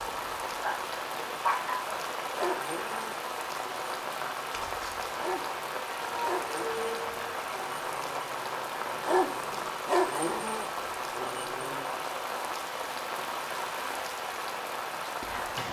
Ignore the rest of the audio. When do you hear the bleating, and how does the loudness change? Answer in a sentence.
The bleating can't be heard in this clip.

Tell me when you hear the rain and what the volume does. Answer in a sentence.
The rain can be heard from 0.0 to 15.6 s, at a steady volume.